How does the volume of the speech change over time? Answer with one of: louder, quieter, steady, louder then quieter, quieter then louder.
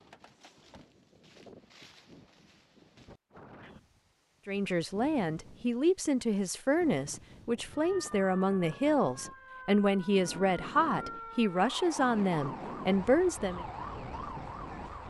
steady.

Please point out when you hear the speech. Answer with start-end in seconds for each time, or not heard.
4.5-13.7.